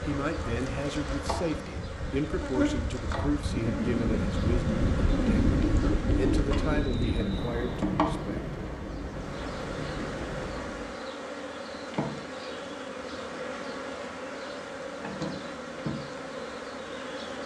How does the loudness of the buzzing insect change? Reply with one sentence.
The volume of the buzzing insect stays about the same.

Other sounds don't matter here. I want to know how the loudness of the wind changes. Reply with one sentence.
The loudness of the wind goes up, then down.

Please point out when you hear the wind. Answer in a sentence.
The wind can be heard from 0.0 to 11.0 s.